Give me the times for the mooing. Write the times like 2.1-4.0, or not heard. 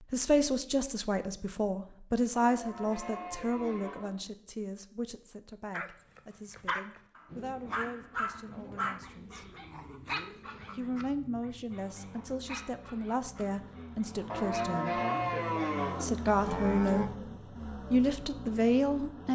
2.4-4.2, 14.3-17.1.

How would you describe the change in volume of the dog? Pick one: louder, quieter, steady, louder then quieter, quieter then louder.
quieter.